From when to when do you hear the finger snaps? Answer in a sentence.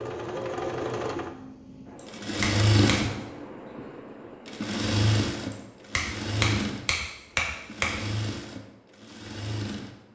You can hear the finger snaps from 1.9 to 3.0 s and from 5.5 to 7.9 s.